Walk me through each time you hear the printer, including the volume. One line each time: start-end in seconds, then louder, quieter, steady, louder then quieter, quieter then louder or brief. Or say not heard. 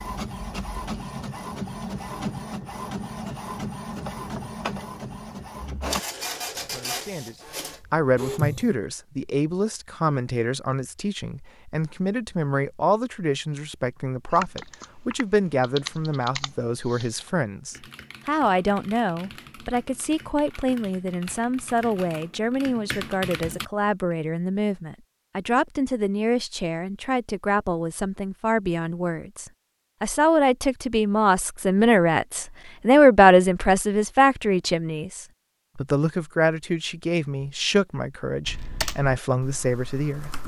0.0-8.8 steady.